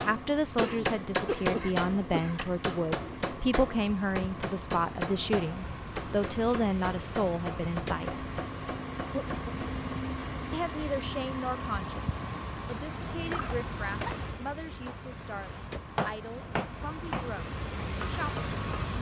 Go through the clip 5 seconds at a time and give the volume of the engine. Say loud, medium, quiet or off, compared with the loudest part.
medium, loud, loud, loud.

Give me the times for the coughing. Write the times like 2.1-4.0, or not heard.
0.6-2.4, 9.0-9.6, 13.2-14.2.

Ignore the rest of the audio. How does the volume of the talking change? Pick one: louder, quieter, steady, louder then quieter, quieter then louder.
quieter.